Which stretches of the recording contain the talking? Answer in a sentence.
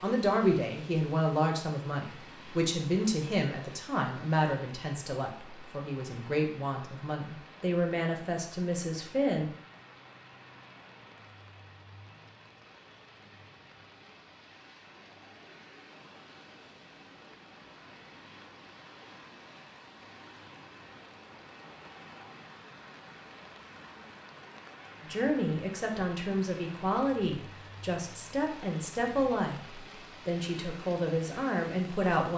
The talking can be heard from 0.0 to 9.5 s and from 25.1 to 32.3 s.